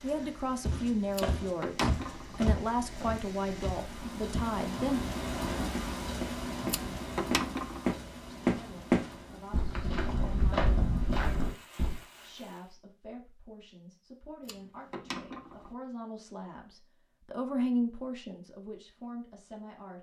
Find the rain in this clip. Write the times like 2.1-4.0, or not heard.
0.0-12.8.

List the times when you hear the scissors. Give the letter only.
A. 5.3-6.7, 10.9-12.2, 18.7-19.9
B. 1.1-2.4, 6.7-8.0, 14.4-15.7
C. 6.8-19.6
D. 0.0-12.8
B.